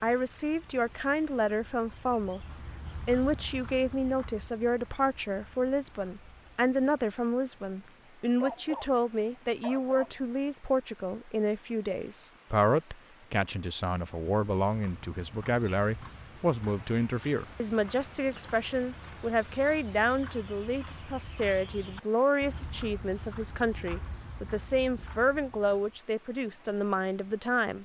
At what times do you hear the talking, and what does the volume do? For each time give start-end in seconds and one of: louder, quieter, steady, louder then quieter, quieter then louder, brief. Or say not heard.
0.0-2.5 brief
3.0-27.8 steady.